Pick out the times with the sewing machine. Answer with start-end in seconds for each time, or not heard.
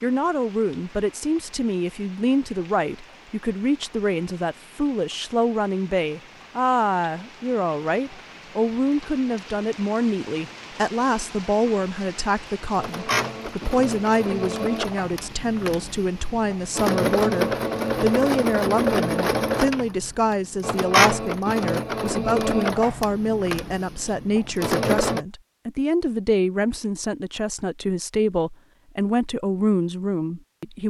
12.2-25.2.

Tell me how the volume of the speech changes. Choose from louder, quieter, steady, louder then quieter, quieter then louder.
steady.